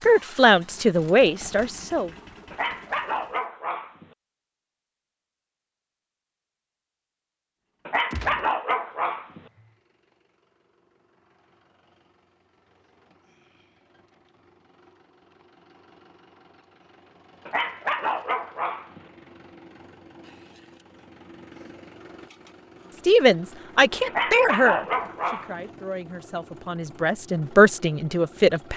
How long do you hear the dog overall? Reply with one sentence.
The dog can be heard for 6 seconds in total.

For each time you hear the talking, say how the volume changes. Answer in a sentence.
The talking can be heard briefly from 0.1 to 2.1 s; and from 23.1 to 28.7 s, getting quieter then louder.